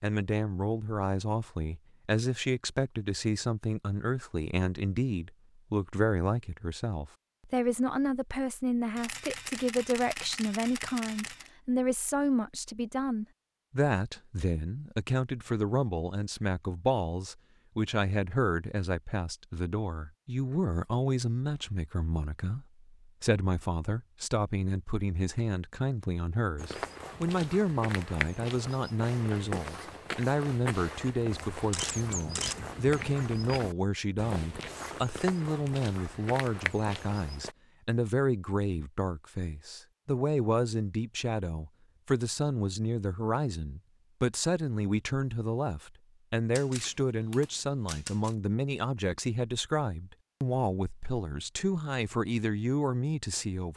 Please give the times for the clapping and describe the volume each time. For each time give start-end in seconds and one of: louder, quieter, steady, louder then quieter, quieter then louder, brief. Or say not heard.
not heard.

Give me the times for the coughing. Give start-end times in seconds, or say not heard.
not heard.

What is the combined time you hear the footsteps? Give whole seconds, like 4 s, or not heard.
11 s.